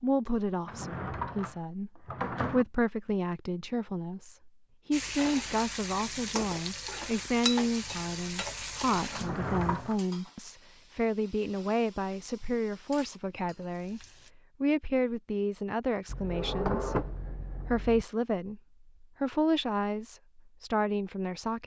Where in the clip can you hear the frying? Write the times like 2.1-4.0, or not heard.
4.9-14.3.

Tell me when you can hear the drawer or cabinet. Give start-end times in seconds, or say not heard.
0.7-2.6, 9.1-9.9, 16.1-18.1.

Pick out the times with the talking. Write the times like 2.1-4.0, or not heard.
0.0-14.0, 14.6-21.6.